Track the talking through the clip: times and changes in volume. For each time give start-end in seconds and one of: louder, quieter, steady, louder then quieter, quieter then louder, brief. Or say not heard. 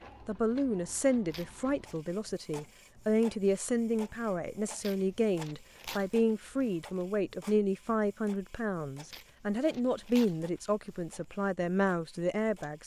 0.2-12.8 steady.